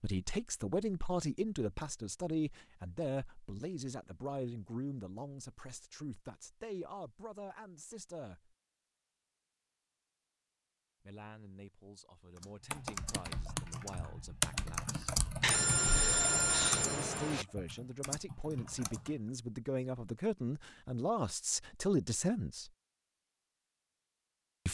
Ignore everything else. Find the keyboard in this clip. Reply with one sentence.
The keyboard can be heard from 12.3 to 19.1 s.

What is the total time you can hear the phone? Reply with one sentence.
The phone can be heard for 2 seconds in total.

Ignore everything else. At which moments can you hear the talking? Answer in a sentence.
The talking can be heard from 0.0 to 8.6 s, from 11.0 to 15.2 s and from 16.8 to 22.7 s.